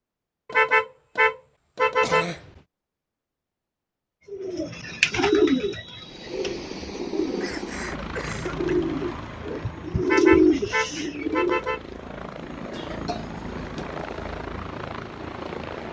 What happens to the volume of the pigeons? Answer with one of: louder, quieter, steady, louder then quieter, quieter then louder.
quieter then louder.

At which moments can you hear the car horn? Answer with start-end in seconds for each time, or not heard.
0.5-2.3, 10.0-11.8.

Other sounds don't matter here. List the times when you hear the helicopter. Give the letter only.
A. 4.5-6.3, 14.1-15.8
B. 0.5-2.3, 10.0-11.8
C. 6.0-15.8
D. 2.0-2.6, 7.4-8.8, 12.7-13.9
C.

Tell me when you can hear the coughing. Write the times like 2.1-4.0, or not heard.
2.0-2.6, 7.4-8.8, 12.7-13.9.